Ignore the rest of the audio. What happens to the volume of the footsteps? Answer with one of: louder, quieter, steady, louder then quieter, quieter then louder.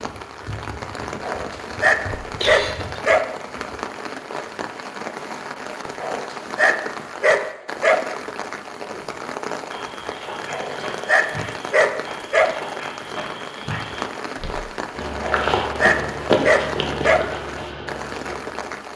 louder then quieter.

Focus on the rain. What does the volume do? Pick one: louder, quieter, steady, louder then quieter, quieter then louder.
steady.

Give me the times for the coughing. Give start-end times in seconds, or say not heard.
2.1-3.0.